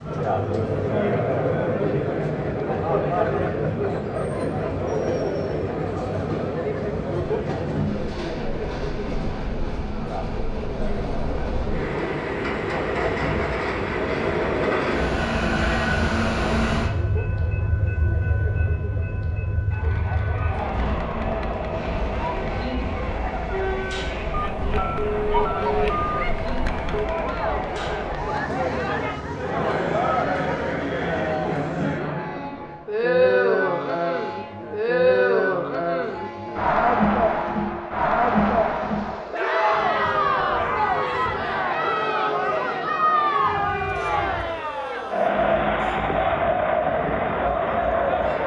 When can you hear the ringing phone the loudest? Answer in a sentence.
The loudest moment of the ringing phone is at 26 seconds.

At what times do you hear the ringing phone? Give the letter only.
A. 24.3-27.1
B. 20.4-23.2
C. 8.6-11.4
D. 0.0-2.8
A.